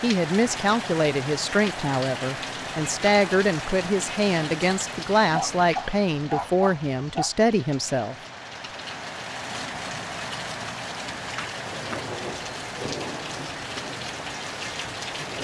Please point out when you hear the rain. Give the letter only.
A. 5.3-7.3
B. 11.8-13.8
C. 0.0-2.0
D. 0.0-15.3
D.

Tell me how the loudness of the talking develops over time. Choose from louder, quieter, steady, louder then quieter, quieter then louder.
steady.